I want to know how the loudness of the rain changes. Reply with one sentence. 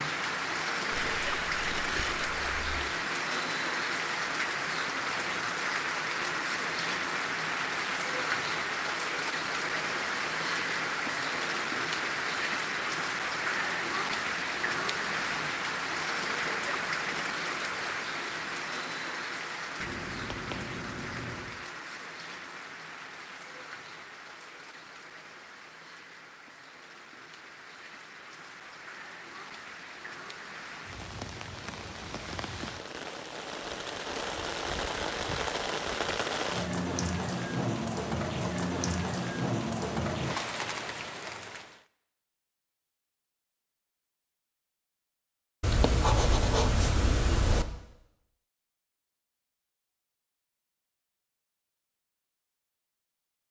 The volume of the rain goes down, then up.